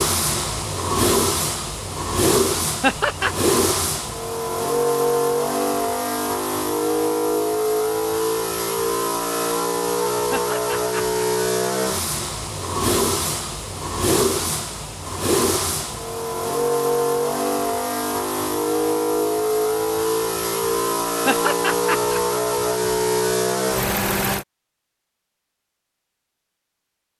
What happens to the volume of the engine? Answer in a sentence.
The volume of the engine stays about the same.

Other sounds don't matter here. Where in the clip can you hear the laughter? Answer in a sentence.
The laughter can be heard from 2.8 to 3.4 s, from 10.3 to 11.2 s and from 21.2 to 22.2 s.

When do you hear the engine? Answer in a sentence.
The engine can be heard from 0.0 to 24.4 s.